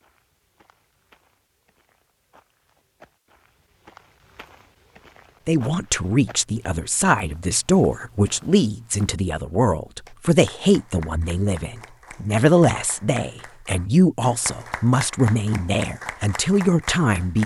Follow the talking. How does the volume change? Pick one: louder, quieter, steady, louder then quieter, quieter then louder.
steady.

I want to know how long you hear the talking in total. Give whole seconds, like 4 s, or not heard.
12 s.